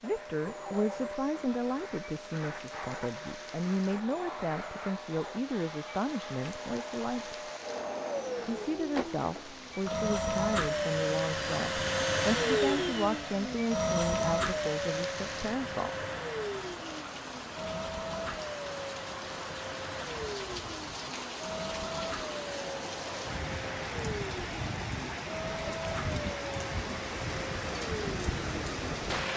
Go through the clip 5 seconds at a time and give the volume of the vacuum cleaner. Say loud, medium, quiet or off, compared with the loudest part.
medium, medium, loud, medium, medium, medium.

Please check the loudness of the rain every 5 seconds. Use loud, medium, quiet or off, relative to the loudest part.
quiet, quiet, medium, medium, loud, loud.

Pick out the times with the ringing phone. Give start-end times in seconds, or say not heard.
not heard.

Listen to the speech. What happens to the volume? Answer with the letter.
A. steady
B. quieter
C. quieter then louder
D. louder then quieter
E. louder
A.